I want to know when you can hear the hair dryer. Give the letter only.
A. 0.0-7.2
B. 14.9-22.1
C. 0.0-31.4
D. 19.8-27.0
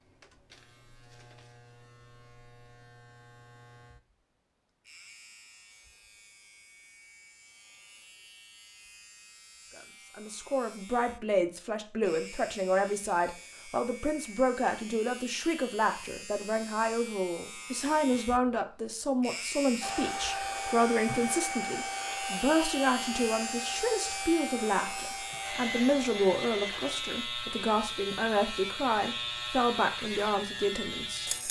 D.